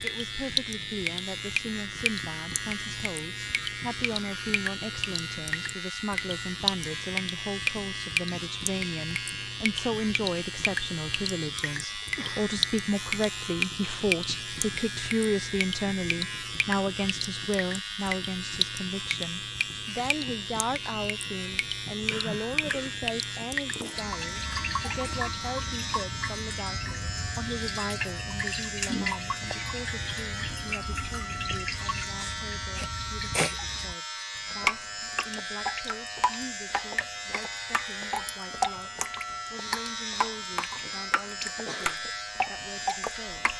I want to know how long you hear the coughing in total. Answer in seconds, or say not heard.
3 s.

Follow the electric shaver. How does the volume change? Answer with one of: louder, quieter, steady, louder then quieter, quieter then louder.
steady.